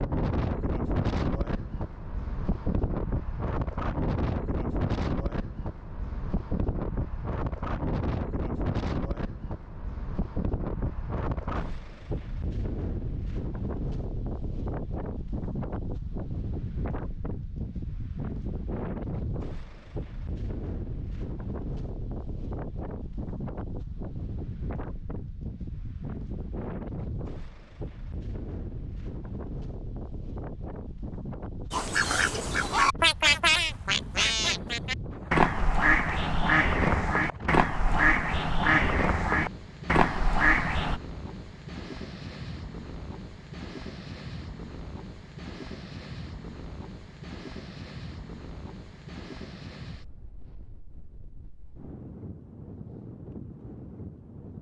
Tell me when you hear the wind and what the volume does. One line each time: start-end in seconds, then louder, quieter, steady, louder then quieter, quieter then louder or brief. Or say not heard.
0.0-54.5 quieter.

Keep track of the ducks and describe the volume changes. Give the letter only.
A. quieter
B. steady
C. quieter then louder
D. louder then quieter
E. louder
B.